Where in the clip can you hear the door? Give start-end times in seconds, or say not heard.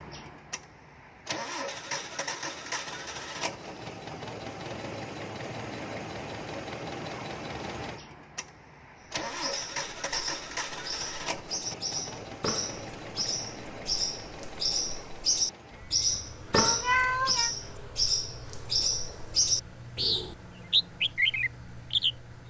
not heard.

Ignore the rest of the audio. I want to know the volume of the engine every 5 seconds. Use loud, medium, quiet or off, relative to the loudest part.
loud, loud, loud, medium, medium.